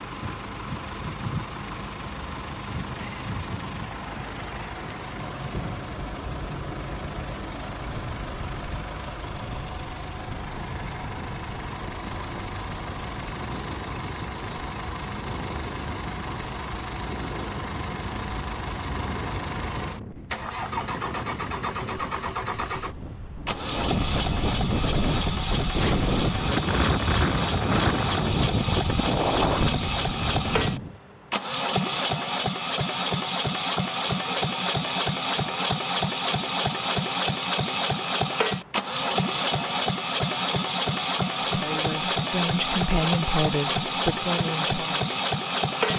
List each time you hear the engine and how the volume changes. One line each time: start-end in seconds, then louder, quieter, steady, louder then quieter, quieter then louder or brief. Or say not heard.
0.0-45.9 louder.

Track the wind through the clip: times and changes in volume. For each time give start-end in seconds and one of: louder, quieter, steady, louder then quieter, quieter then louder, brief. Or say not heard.
0.0-30.9 louder.